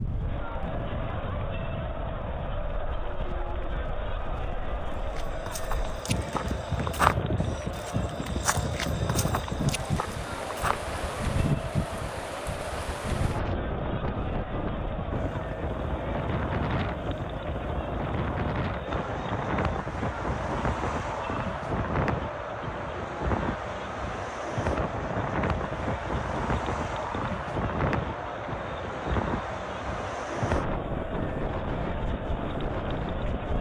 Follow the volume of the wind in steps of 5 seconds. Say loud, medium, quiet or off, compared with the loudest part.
medium, loud, loud, loud, loud, loud, loud.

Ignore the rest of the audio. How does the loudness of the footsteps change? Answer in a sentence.
The loudness of the footsteps goes up, then down.